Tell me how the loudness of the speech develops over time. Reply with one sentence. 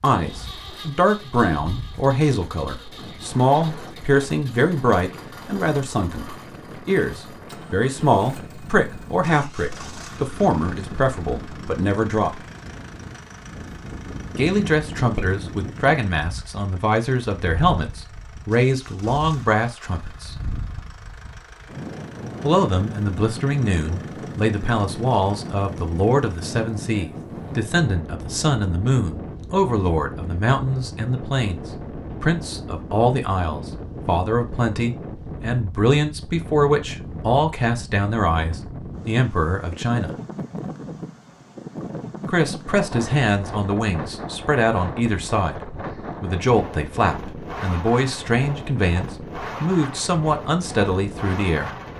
The loudness of the speech stays about the same.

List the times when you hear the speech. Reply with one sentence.
The speech can be heard from 0.0 to 12.4 s, from 14.3 to 20.4 s, from 22.4 to 40.1 s and from 42.2 to 51.7 s.